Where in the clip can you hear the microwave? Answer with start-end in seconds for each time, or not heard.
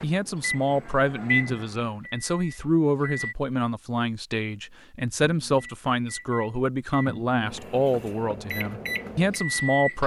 0.0-3.4, 5.2-10.0.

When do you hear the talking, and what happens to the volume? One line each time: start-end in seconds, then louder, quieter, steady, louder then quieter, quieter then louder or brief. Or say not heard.
0.0-10.0 steady.